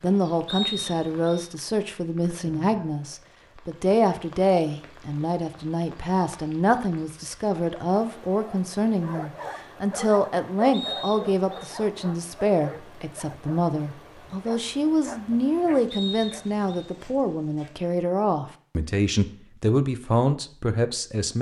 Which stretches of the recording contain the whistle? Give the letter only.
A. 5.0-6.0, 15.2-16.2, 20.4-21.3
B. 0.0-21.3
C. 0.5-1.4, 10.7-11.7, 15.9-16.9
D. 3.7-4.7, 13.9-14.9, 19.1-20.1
C.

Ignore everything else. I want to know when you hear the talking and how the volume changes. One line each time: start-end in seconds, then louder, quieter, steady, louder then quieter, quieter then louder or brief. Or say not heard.
0.0-21.3 steady.